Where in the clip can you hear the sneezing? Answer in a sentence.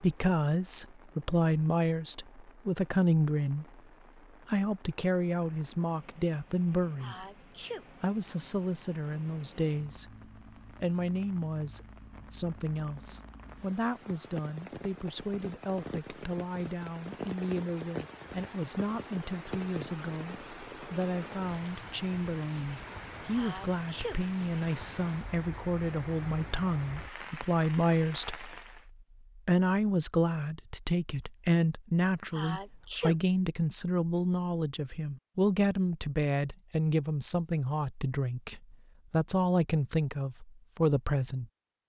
You can hear the sneezing from 7.0 to 7.8 s, from 23.4 to 24.2 s and from 32.3 to 33.1 s.